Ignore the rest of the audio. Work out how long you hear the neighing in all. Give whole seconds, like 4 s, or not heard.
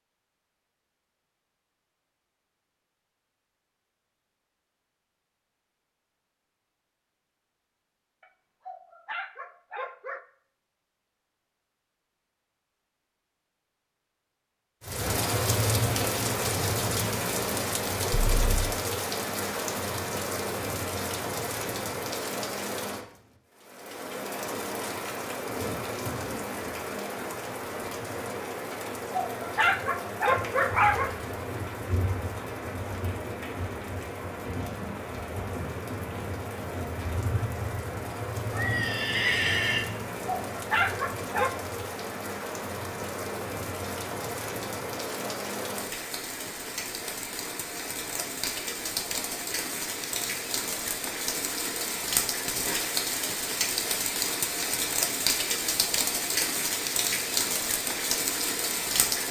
2 s.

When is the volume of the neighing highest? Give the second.
39 s.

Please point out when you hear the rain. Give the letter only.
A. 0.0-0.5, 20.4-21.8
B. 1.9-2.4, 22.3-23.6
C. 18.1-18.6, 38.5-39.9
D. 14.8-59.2
D.